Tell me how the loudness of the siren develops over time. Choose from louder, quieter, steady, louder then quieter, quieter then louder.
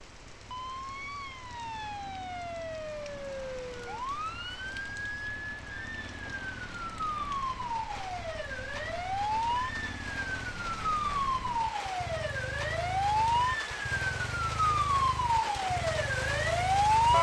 louder.